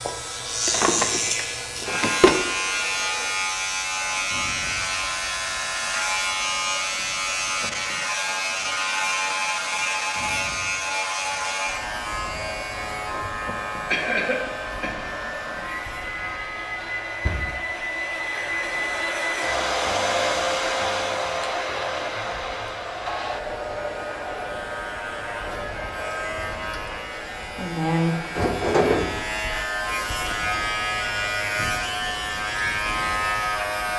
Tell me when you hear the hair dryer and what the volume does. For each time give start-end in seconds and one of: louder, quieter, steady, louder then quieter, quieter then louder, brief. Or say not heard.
0.0-33.9 louder then quieter.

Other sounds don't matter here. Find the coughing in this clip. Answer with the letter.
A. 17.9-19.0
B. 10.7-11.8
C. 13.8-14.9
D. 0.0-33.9
C.